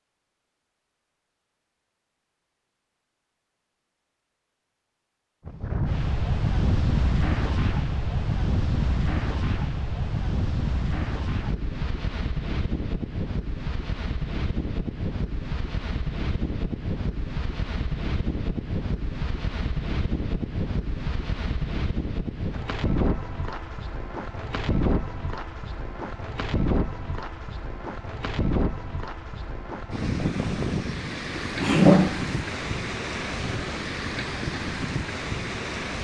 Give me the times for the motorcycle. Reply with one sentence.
You can't hear the motorcycle here.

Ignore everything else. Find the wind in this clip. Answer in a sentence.
The wind can be heard from 5.5 to 35.9 s.